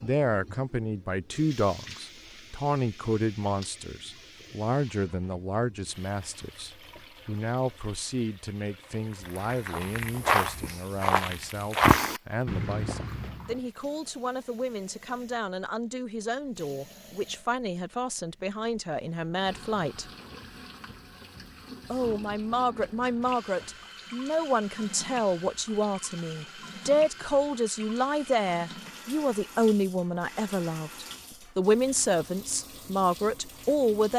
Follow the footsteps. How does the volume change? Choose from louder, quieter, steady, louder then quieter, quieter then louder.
louder then quieter.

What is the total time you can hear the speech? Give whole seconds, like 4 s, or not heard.
32 s.